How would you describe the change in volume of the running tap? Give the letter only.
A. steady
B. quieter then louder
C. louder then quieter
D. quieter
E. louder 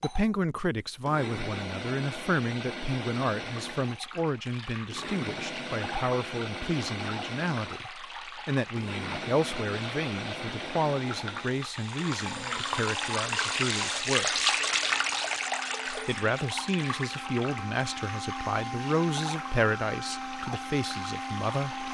C.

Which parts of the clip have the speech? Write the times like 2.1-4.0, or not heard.
0.0-14.4, 15.8-21.8.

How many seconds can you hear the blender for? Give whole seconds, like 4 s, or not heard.
22 s.